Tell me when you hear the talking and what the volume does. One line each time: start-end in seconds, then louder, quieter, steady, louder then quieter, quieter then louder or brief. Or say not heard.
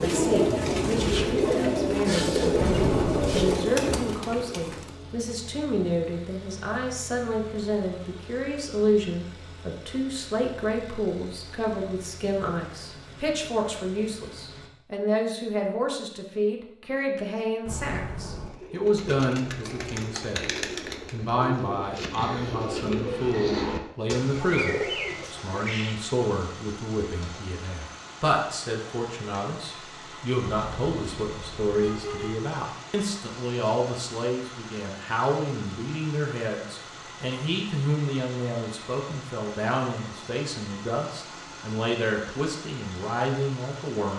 0.0-20.5 steady
21.1-44.1 steady.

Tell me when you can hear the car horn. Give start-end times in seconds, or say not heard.
2.5-3.5, 17.6-18.5, 30.4-32.4.